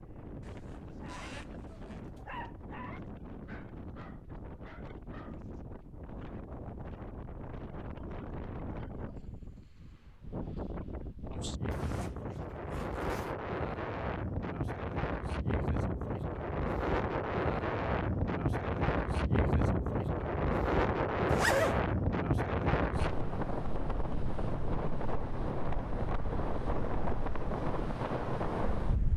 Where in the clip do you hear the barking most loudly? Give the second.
2 s.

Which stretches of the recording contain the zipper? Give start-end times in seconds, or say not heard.
0.4-2.0, 11.7-13.4, 21.3-21.8.